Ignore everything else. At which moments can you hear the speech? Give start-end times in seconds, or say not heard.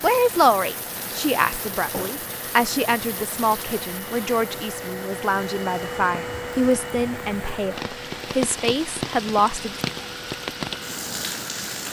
0.0-9.8.